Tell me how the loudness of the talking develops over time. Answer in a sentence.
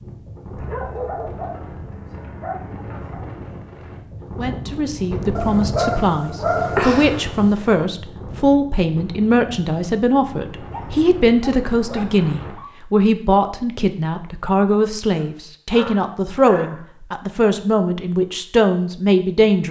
The loudness of the talking stays about the same.